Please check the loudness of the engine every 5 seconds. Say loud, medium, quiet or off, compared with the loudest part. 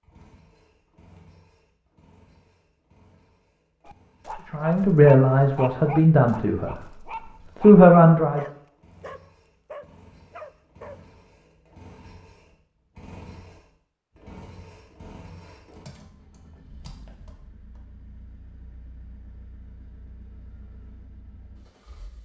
medium, medium, loud, loud, medium.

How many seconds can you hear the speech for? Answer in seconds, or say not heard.
3 s.